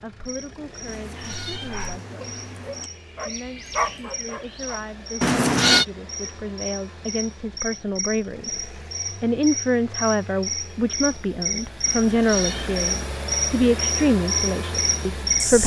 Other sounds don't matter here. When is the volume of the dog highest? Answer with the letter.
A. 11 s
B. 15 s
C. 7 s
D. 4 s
D.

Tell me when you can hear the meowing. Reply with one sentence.
You can hear the meowing from 0.8 to 2.9 s, from 5.2 to 5.8 s and from 11.8 to 12.7 s.